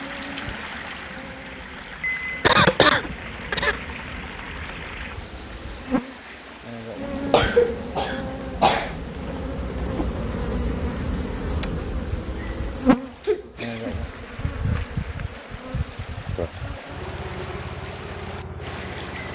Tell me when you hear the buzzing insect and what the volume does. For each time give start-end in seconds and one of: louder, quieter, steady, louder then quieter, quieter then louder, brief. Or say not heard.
0.0-19.3 louder then quieter.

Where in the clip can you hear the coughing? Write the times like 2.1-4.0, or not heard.
2.4-3.8, 7.2-8.9, 13.2-14.1.